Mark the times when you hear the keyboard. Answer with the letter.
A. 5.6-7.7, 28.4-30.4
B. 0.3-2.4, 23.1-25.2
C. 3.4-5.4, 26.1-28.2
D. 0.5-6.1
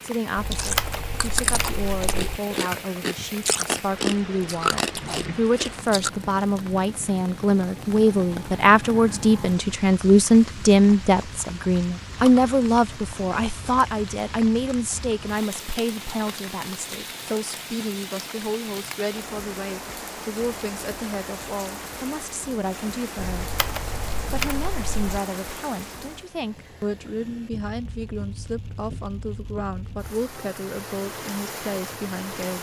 B.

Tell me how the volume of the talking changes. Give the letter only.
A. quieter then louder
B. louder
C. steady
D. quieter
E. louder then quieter
E.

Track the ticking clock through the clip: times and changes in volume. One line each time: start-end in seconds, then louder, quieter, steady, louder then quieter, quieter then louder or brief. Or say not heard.
not heard.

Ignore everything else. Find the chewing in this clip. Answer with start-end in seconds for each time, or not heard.
0.5-6.1.